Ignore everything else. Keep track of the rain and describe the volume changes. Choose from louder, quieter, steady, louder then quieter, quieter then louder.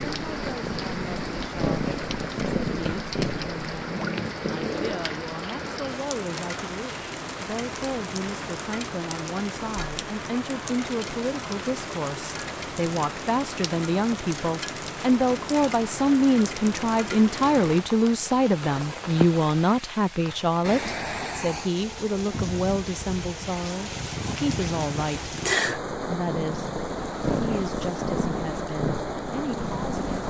steady.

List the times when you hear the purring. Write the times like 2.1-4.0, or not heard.
0.0-5.1, 23.8-30.2.